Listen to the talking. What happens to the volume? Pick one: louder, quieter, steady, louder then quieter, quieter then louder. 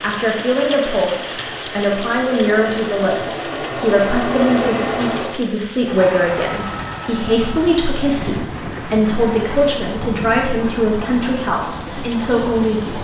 steady.